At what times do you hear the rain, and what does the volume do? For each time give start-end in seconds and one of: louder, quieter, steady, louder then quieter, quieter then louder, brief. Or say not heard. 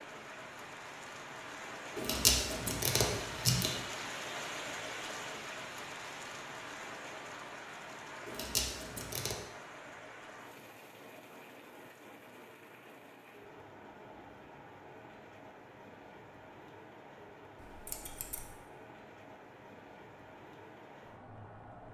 0.0-21.8 quieter.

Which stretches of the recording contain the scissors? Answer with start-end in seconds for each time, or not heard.
1.9-3.8, 8.2-9.3, 17.6-18.5.